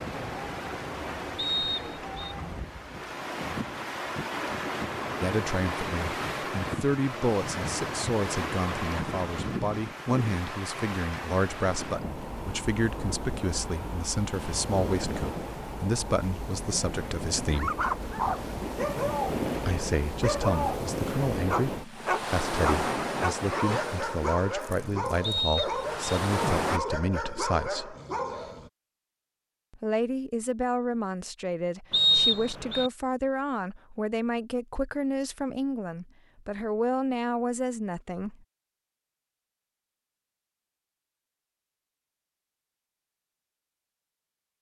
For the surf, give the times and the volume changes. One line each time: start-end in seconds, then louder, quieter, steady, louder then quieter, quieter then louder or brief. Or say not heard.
0.0-26.8 steady.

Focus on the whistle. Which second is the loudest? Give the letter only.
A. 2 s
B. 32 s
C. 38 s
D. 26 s
B.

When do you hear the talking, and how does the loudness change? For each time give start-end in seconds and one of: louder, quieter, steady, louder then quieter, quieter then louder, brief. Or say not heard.
5.2-17.7 steady
19.6-27.9 steady
29.7-38.4 steady.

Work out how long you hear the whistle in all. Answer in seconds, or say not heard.
3 s.